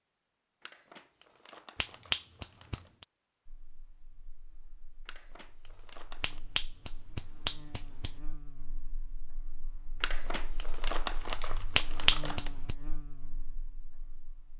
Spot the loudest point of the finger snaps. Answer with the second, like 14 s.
12 s.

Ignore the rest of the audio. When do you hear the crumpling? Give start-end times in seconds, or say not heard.
0.6-2.9, 5.0-6.4, 10.0-12.5.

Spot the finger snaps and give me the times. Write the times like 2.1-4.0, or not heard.
1.8-3.0, 6.2-8.2, 11.8-12.8.